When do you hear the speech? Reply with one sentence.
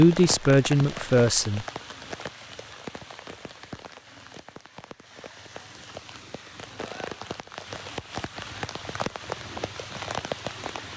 You can hear the speech from 0.0 to 1.6 s.